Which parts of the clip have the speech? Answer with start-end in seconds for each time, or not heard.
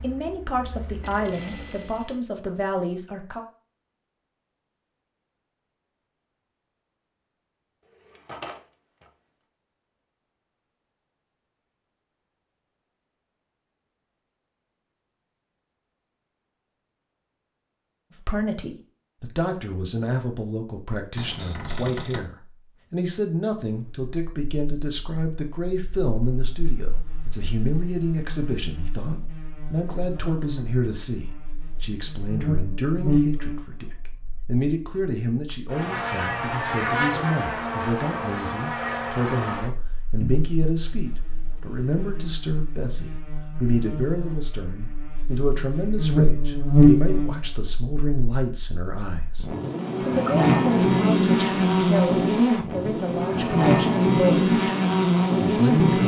0.0-3.5, 18.2-54.5, 55.5-56.0.